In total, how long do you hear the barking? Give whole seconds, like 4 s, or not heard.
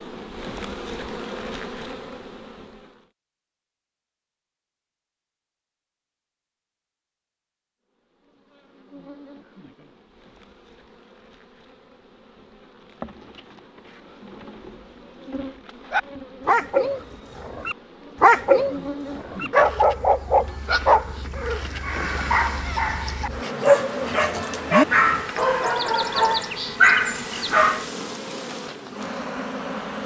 12 s.